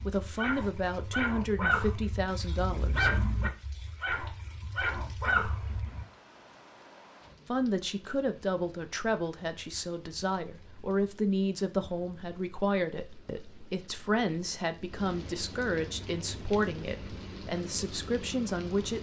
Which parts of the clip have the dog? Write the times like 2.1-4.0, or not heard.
0.0-6.0.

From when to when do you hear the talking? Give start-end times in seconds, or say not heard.
0.0-3.2, 7.5-18.9.